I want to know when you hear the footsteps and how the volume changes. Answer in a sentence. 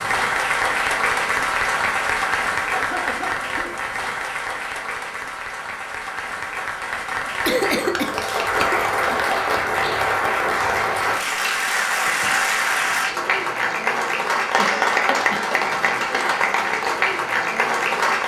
You can't hear the footsteps here.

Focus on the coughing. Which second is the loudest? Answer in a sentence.
The volume of the coughing peaks at 8 seconds.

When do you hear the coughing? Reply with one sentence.
The coughing can be heard from 2.7 to 3.9 s, from 7.5 to 9.2 s and from 14.6 to 15.7 s.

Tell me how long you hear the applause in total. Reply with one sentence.
You can hear the applause for 18 seconds altogether.